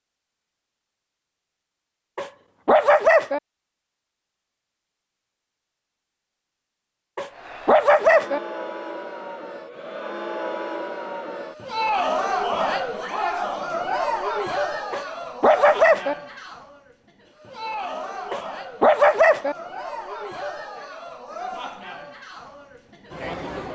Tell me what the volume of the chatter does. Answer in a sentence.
The volume of the chatter goes up, then down.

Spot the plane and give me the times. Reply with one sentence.
The plane can't be heard in this clip.